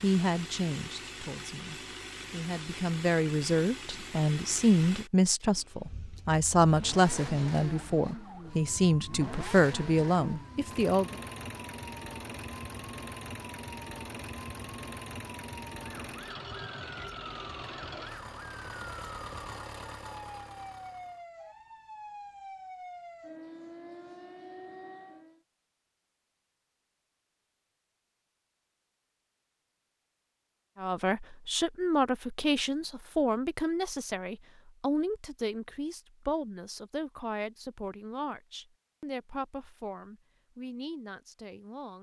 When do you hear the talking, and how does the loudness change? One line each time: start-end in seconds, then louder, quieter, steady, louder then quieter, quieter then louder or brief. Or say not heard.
0.0-11.2 louder
30.8-41.9 quieter.